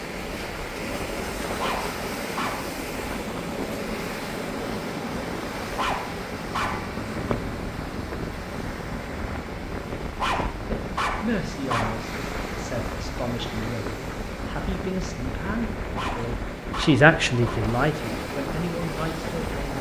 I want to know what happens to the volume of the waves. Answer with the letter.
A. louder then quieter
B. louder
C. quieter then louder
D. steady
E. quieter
D.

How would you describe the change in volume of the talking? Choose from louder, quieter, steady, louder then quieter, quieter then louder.
louder then quieter.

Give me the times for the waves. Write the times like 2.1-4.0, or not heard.
0.0-19.7.